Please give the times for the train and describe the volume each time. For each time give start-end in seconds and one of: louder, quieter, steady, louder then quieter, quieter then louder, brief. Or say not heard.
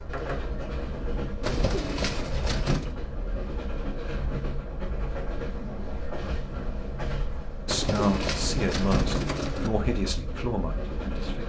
0.0-11.4 steady.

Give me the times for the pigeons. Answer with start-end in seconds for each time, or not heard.
1.4-3.0, 7.7-9.7.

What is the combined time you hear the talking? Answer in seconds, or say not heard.
4 s.